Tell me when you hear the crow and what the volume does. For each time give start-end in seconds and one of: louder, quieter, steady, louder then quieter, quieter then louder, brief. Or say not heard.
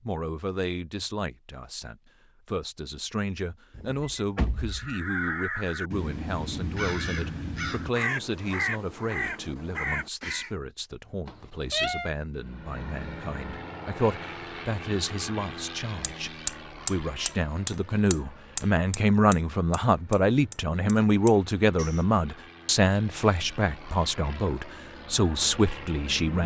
4.7-10.5 steady.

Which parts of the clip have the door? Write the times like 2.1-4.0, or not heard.
3.8-5.0.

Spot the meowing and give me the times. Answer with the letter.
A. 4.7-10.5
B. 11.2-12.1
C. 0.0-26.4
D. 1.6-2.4
B.